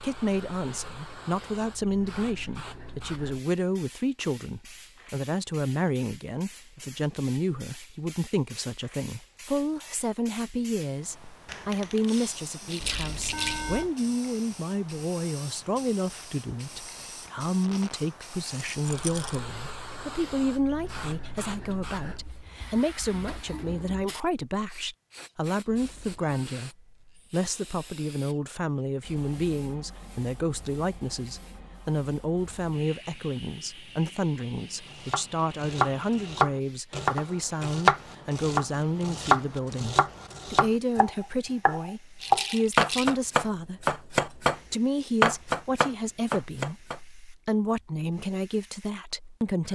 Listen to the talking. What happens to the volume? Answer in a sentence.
The loudness of the talking stays about the same.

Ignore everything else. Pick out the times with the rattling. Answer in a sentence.
You can hear the rattling from 12.7 to 13.7 s, from 18.8 to 19.4 s and from 42.2 to 43.1 s.